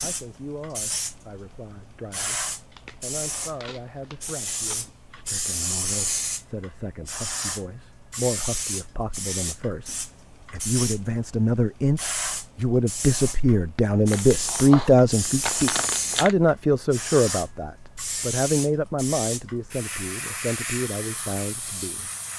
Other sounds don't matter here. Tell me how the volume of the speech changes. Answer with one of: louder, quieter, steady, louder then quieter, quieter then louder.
louder then quieter.